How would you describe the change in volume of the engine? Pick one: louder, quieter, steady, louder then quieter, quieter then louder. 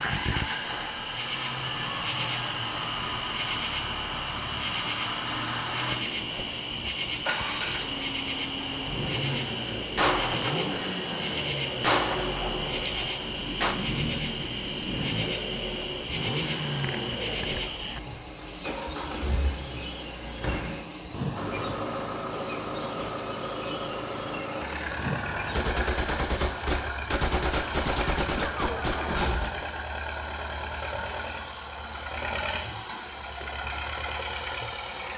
steady.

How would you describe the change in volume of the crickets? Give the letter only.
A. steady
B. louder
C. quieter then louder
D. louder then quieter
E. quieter
A.